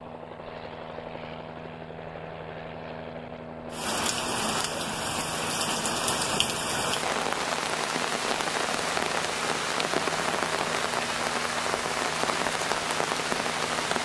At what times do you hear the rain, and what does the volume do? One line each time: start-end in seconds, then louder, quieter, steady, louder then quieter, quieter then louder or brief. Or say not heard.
3.7-13.9 steady.